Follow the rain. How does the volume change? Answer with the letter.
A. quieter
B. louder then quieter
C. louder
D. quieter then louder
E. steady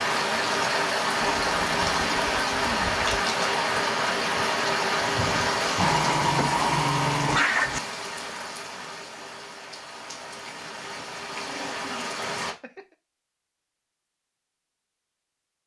A.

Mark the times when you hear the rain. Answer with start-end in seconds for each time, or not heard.
0.0-12.6.